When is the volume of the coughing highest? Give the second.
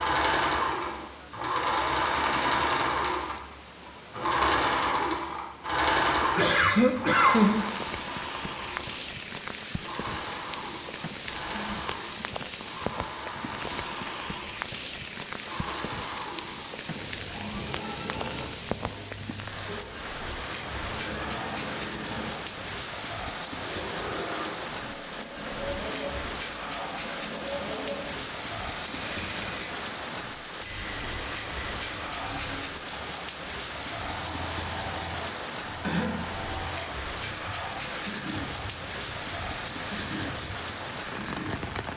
7 s.